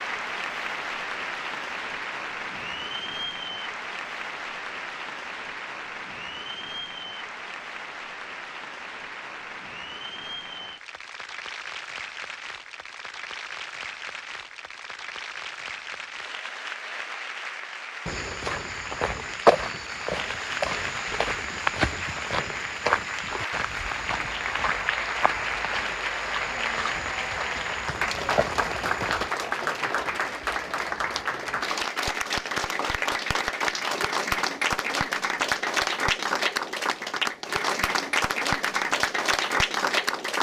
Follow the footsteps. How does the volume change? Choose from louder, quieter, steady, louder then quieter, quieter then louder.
quieter.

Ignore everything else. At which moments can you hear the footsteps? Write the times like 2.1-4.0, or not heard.
18.1-29.3.